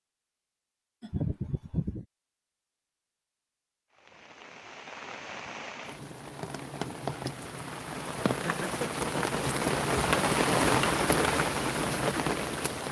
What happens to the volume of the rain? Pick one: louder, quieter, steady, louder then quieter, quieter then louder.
louder.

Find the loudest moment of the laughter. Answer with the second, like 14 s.
1 s.